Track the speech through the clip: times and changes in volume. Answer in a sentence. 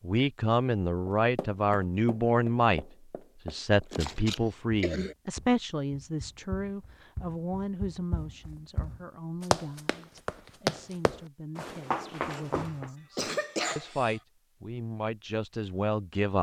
The speech can be heard briefly from 0.0 to 2.9 s; and from 3.5 to 16.3 s, getting quieter then louder.